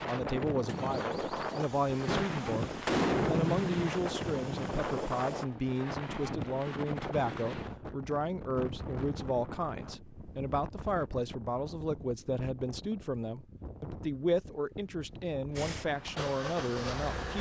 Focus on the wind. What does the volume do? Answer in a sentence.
The loudness of the wind goes down.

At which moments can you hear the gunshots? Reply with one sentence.
The gunshots can be heard from 2.0 to 3.8 s.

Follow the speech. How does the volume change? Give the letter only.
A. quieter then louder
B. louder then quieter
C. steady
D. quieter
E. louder
C.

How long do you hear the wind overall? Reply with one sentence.
You can hear the wind for 17 seconds altogether.